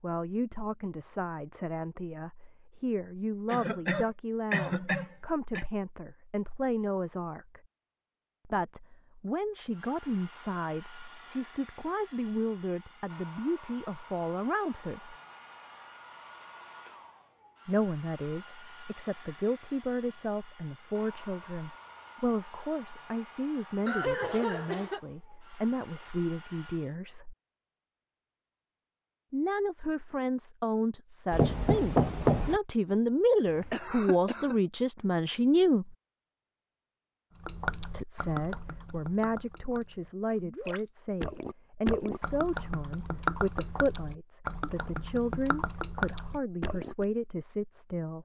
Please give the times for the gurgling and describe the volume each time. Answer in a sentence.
You can hear the gurgling from 37.4 to 47.0 s, getting louder.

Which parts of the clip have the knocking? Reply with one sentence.
You can hear the knocking from 31.3 to 32.6 s.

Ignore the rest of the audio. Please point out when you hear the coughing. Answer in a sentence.
The coughing can be heard from 3.5 to 5.7 s, from 23.9 to 25.0 s and from 33.5 to 34.5 s.